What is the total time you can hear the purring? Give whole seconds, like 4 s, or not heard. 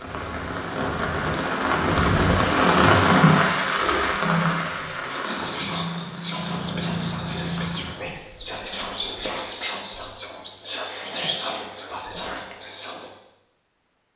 not heard.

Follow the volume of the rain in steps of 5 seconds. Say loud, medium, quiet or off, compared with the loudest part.
loud, medium, off.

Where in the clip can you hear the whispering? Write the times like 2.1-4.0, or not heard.
4.7-13.1.